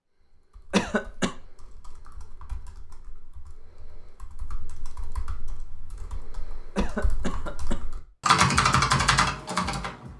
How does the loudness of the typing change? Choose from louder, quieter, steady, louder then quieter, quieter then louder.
louder.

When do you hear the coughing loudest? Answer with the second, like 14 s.
1 s.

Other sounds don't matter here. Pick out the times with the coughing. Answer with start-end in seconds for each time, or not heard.
0.7-1.4, 6.8-7.8.